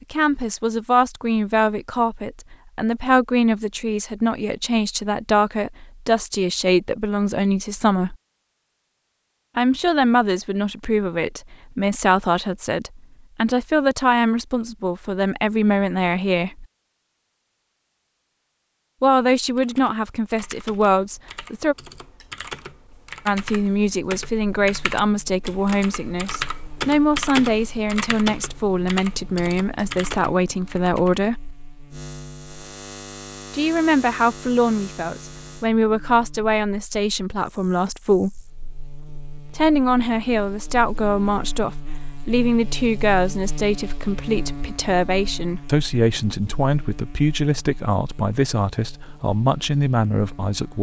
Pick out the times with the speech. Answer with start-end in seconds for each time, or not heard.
0.0-8.2, 9.6-16.6, 19.0-21.8, 23.2-31.6, 33.5-38.4, 39.5-50.7.